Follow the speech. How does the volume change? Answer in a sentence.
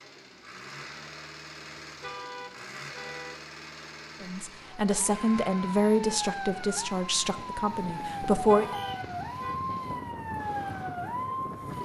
The volume of the speech goes down.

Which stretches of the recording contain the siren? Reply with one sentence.
You can hear the siren from 4.8 to 11.8 s.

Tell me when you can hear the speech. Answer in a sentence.
The speech can be heard from 4.2 to 8.7 s.